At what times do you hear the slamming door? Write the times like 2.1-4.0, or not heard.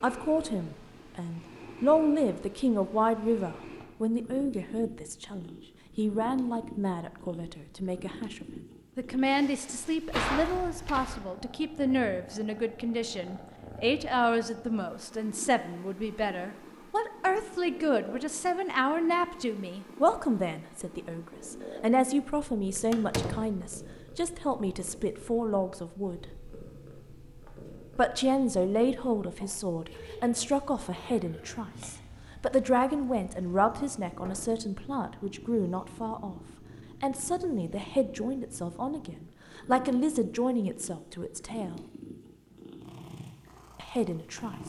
9.7-11.2, 22.9-23.6, 34.2-34.6.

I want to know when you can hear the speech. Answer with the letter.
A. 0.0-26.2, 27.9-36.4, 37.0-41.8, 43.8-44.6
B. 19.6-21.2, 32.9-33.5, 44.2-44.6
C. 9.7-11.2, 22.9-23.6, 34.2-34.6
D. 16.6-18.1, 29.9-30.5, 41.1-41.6
A.